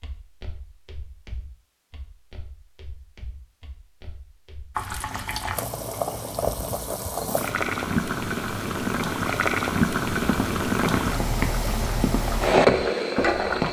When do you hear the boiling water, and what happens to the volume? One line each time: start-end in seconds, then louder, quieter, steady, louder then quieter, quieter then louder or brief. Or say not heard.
4.8-13.6 louder.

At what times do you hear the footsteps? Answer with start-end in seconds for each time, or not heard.
0.0-4.8, 10.1-13.6.